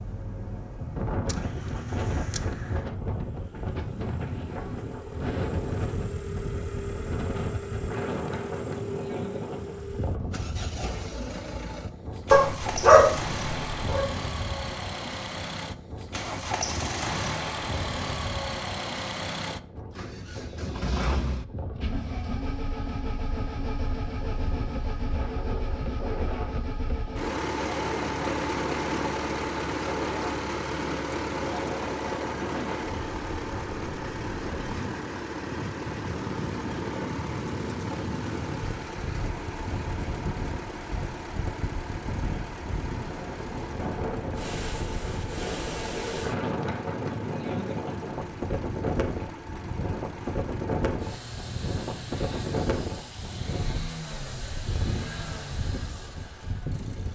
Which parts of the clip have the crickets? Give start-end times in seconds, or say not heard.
not heard.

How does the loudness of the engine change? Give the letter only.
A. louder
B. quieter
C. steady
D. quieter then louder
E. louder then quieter
E.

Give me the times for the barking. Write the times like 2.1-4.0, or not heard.
12.3-14.1.